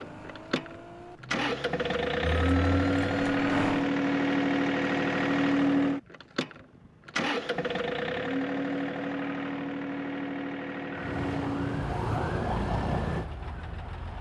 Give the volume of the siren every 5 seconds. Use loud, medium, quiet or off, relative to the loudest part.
medium, off, loud.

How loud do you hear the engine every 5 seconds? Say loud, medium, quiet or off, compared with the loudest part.
loud, loud, medium.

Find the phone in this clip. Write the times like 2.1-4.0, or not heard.
not heard.